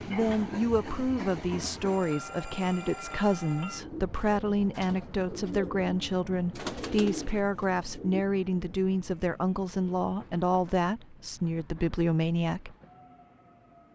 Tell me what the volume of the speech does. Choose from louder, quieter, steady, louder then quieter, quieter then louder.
steady.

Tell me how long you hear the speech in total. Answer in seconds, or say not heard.
13 s.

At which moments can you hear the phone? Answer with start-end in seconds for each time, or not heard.
not heard.